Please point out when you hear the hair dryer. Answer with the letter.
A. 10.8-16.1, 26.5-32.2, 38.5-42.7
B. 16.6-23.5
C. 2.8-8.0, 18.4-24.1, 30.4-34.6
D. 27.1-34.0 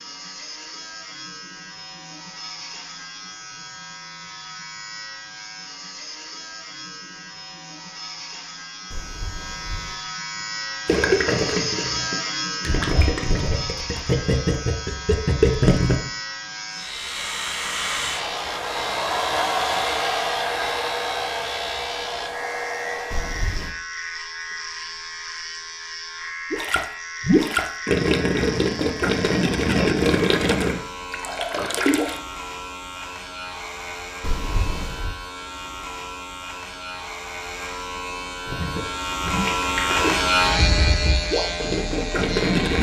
B.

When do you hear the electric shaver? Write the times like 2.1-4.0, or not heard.
0.0-42.7.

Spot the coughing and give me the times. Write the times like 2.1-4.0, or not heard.
8.9-10.1, 23.1-23.8, 34.2-35.1.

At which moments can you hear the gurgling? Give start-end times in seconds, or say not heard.
10.8-16.1, 26.5-32.2, 38.5-42.7.